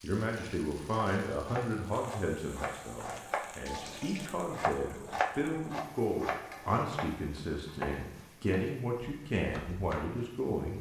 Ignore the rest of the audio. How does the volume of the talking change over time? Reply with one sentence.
The loudness of the talking goes down, then up.